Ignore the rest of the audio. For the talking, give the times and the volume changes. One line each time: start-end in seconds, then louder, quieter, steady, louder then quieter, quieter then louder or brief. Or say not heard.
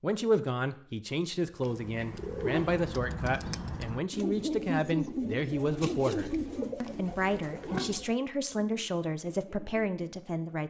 0.0-10.6 steady.